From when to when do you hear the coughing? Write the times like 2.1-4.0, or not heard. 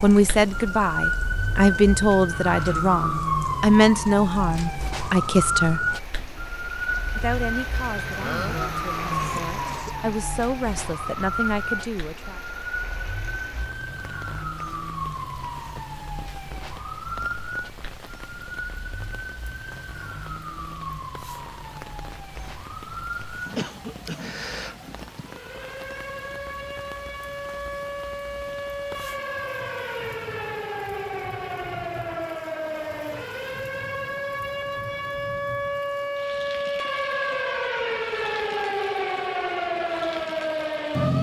8.2-9.9, 23.6-24.2.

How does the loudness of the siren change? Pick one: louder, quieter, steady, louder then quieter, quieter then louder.
quieter then louder.